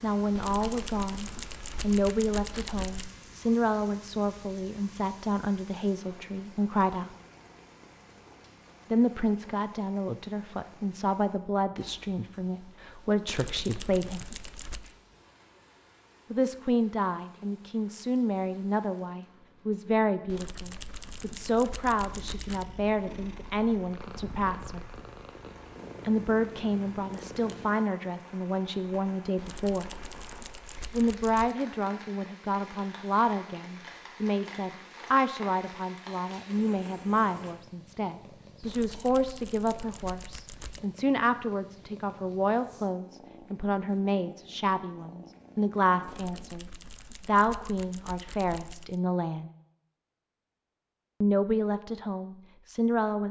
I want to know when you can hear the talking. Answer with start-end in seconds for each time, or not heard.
0.0-7.2, 8.9-14.2, 16.3-24.9, 26.0-29.9, 30.9-49.5, 51.2-53.2.